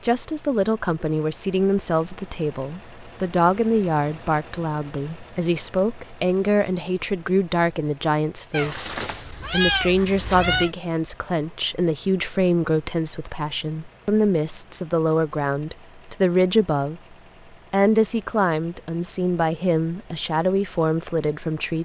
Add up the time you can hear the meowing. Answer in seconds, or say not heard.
2 s.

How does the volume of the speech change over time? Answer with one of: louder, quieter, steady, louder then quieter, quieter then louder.
steady.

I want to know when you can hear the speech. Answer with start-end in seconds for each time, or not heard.
0.0-17.0, 17.7-21.7.